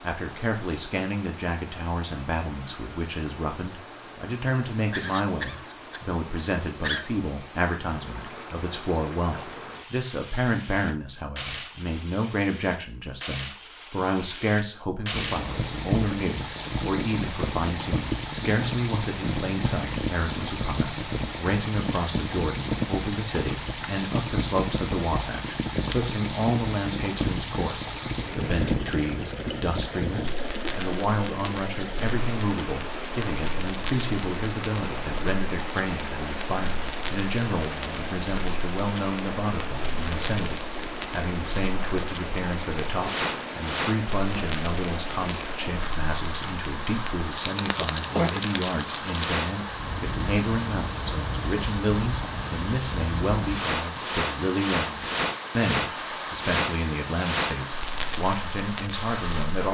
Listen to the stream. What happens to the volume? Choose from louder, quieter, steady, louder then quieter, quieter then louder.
louder.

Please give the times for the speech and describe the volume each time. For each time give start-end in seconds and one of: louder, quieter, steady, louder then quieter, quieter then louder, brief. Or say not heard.
0.0-59.6 steady.